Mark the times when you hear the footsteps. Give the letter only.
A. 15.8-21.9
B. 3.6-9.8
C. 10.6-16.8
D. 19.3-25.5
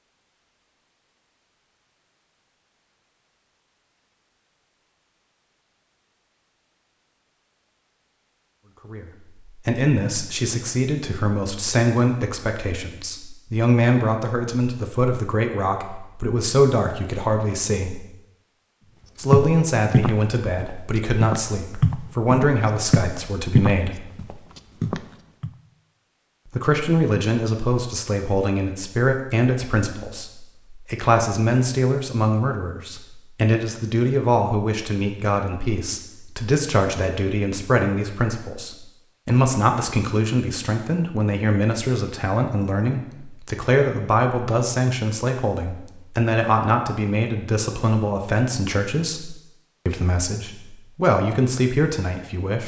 D.